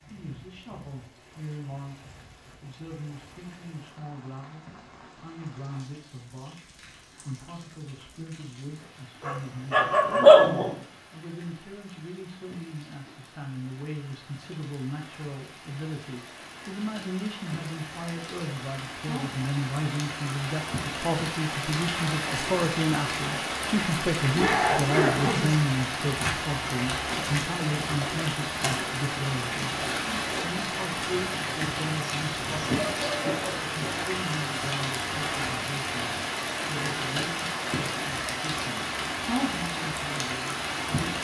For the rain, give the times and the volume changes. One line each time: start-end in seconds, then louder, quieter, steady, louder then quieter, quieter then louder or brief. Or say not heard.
0.0-41.1 louder.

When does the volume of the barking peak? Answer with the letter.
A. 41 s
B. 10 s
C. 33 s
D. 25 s
B.